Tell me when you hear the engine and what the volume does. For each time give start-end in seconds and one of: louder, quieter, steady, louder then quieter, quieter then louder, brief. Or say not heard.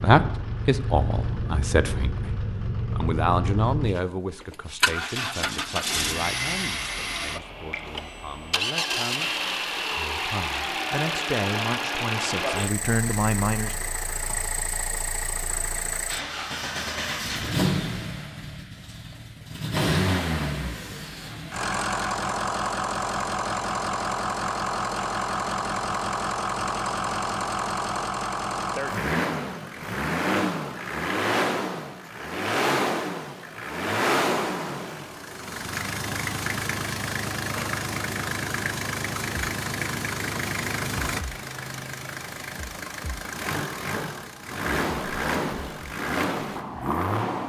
0.0-47.4 steady.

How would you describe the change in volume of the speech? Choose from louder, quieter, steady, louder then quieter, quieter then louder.
quieter then louder.